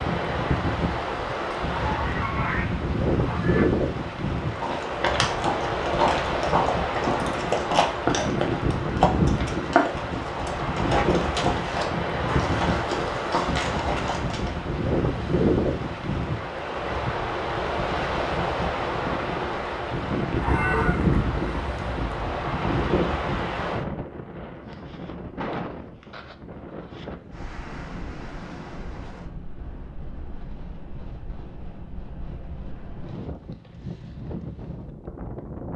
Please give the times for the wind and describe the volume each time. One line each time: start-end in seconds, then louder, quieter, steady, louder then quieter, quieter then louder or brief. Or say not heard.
0.0-35.7 quieter.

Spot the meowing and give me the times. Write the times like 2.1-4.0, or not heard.
not heard.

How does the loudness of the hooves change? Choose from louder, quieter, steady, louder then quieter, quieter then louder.
steady.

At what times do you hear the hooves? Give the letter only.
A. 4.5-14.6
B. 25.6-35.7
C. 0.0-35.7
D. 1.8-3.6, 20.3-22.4
A.